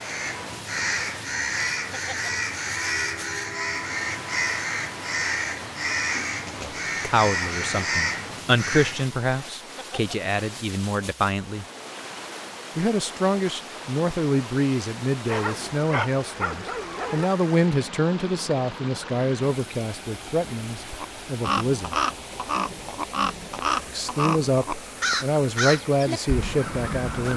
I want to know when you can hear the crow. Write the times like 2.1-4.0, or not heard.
0.0-9.2, 20.9-27.3.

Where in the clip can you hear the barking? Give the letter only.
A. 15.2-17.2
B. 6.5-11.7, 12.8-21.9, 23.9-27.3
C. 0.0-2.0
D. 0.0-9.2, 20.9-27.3
A.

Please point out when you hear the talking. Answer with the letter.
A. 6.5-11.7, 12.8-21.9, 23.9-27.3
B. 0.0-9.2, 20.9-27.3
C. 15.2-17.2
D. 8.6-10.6
A.